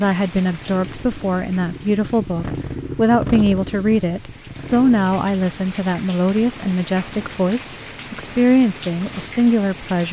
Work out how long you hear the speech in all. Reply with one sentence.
You can hear the speech for 10 seconds altogether.